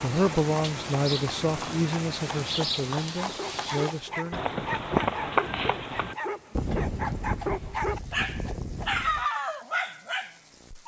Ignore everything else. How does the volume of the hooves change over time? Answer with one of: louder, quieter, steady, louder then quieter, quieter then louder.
louder then quieter.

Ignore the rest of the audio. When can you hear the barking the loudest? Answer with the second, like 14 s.
9 s.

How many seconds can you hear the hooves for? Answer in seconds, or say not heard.
9 s.